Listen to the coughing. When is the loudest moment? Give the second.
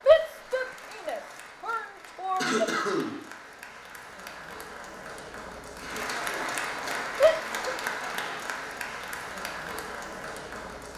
3 s.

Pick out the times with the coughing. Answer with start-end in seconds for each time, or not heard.
2.4-3.2, 5.8-6.6.